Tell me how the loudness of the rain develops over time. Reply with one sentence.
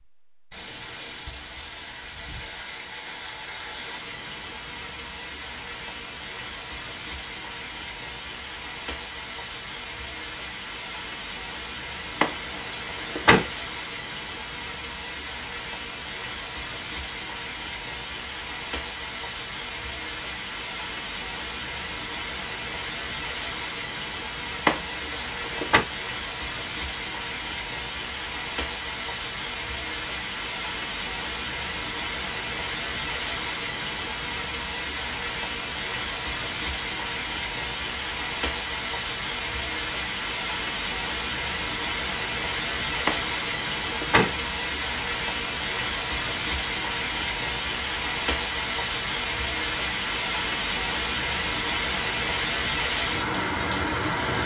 The volume of the rain goes up.